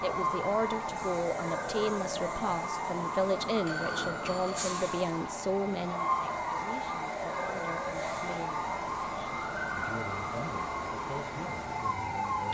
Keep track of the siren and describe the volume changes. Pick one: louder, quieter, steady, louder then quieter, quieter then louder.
steady.